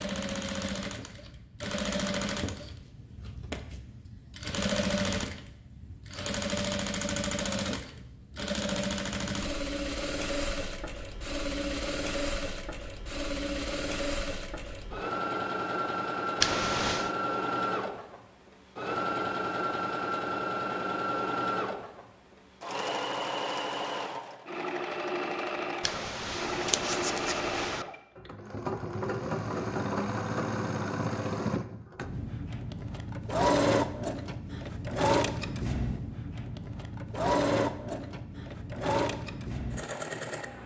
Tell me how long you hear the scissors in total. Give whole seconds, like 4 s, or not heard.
3 s.